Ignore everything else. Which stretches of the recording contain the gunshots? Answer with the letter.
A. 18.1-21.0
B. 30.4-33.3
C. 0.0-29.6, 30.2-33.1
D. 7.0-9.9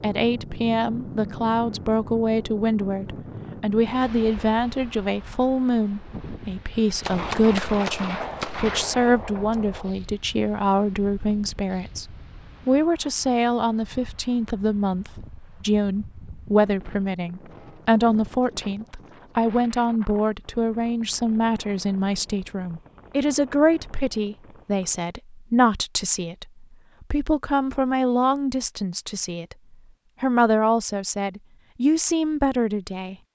D.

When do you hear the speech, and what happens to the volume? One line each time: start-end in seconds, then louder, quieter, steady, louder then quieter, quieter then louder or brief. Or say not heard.
0.0-29.6 steady
30.2-33.1 brief.